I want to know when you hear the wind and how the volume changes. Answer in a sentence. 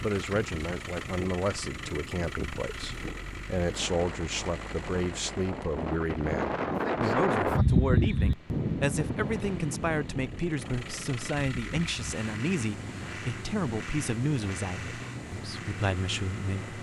You can hear the wind from 0.0 to 16.7 s, getting louder then quieter.